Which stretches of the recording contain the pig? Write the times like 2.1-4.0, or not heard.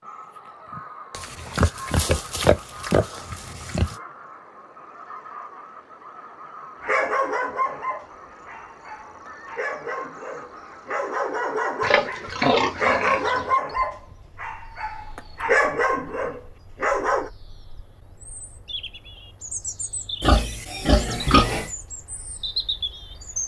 1.1-4.0, 11.8-13.4, 20.2-21.7.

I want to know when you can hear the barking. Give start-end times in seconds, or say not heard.
6.8-17.3.